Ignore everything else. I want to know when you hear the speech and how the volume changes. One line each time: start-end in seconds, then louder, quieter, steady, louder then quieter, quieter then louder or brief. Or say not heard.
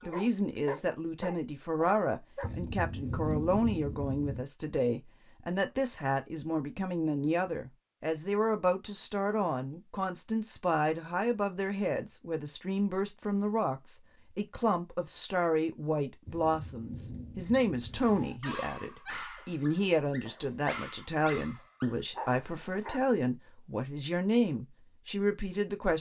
0.0-25.9 steady.